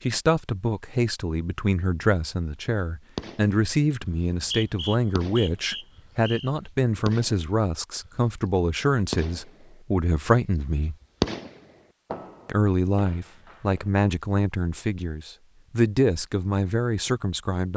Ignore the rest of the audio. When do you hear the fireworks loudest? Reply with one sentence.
The loudest moment of the fireworks is at 11 seconds.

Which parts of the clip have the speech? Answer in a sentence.
You can hear the speech from 0.0 to 10.9 s and from 12.4 to 17.7 s.